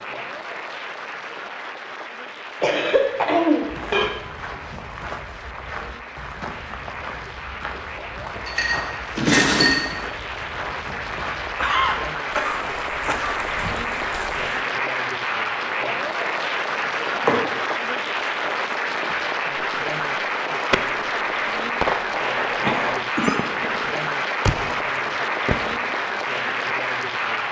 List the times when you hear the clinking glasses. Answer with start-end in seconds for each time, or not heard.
8.4-9.9, 16.3-17.6.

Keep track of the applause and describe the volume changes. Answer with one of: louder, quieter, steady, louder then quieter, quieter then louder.
louder.